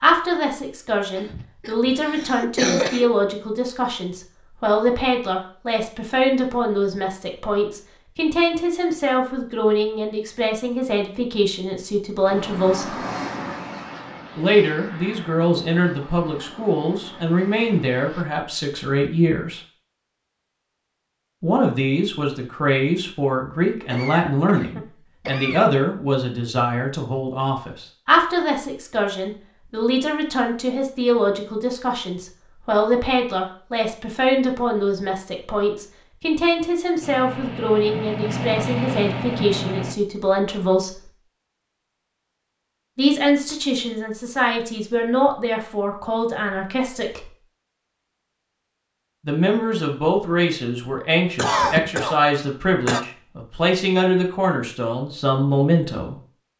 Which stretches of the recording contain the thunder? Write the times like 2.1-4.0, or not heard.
not heard.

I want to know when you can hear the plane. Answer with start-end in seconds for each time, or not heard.
12.2-18.2, 37.0-40.0.